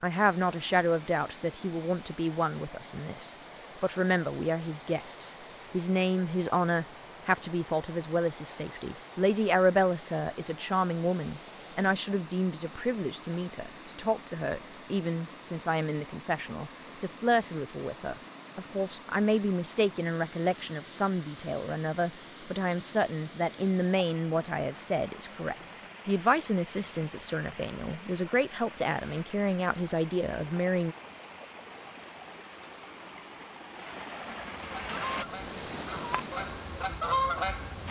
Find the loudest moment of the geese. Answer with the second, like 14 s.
37 s.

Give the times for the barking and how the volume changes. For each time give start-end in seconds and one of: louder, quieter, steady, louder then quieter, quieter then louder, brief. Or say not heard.
not heard.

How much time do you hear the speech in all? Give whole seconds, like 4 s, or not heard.
31 s.